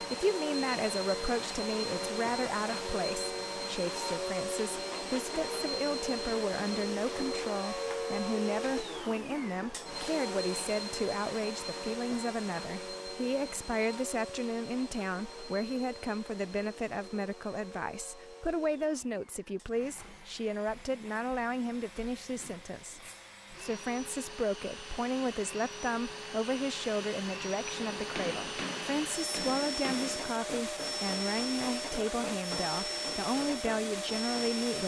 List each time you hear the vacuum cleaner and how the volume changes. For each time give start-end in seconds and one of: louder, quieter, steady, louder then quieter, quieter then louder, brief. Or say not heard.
0.0-34.8 quieter then louder.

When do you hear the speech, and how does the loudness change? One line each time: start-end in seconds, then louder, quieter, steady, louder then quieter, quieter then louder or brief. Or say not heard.
0.0-34.8 steady.